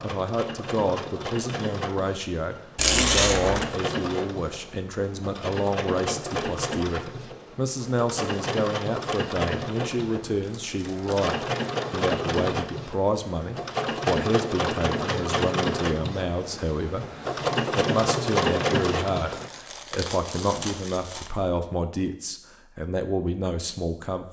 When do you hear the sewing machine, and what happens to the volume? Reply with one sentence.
You can hear the sewing machine from 0.0 to 19.5 s, getting louder.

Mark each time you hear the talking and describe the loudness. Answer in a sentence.
You can hear the talking from 0.0 to 24.2 s, at a steady volume.